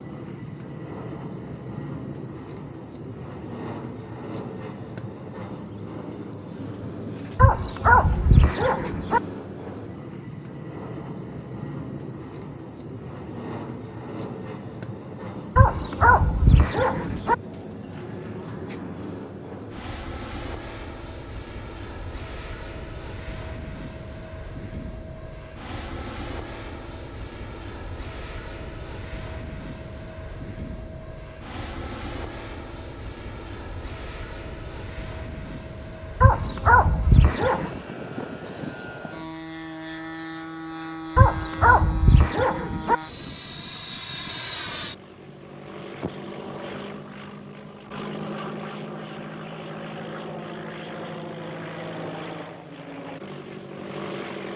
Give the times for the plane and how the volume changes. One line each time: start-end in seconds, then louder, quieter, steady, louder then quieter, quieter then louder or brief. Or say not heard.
0.0-54.5 steady.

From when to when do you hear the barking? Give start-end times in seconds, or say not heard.
7.3-9.2, 15.6-17.4, 36.2-37.8, 41.1-43.0.